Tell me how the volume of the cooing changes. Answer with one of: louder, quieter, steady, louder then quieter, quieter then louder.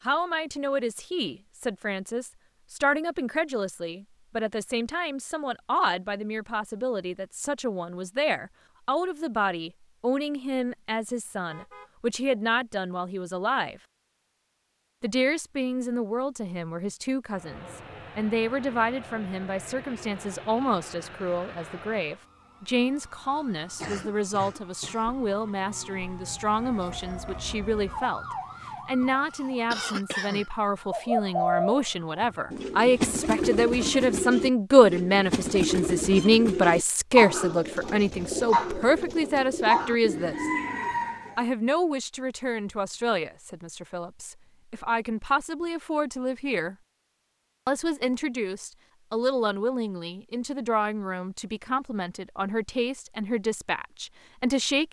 steady.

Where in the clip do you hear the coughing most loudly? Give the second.
30 s.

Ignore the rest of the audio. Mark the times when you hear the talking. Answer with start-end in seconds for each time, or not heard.
0.0-13.8, 15.0-28.2, 28.9-40.5, 41.4-46.8, 47.6-54.8.